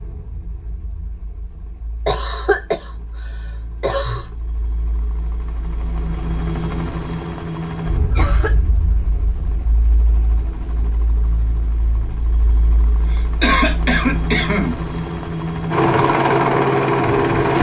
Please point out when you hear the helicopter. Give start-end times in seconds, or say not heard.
0.0-17.5.